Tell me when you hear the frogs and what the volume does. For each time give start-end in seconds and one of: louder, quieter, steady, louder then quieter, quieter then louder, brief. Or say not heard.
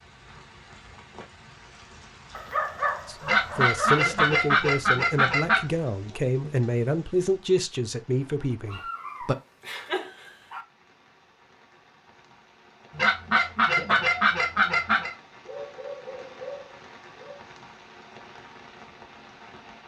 not heard.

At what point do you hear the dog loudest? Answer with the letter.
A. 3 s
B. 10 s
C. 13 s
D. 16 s
A.